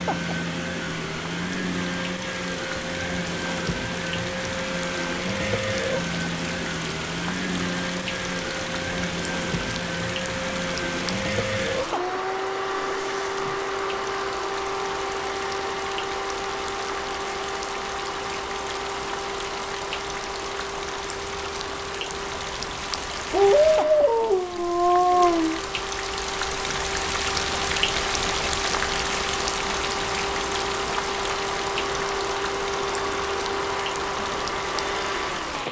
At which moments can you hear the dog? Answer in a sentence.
You can hear the dog from 23.3 to 25.6 s.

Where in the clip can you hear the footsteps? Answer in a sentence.
The footsteps can't be heard in this clip.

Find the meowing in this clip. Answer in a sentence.
You can't hear the meowing here.